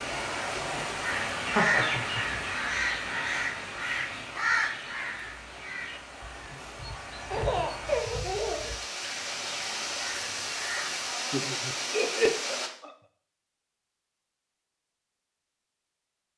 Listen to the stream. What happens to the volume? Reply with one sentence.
The loudness of the stream goes down, then up.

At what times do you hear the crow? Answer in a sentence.
The crow can be heard from 1.0 to 11.2 s.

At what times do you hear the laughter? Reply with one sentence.
You can hear the laughter from 1.4 to 2.4 s, from 7.3 to 8.8 s and from 11.3 to 12.9 s.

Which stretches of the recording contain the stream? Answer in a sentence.
The stream can be heard from 0.0 to 12.7 s.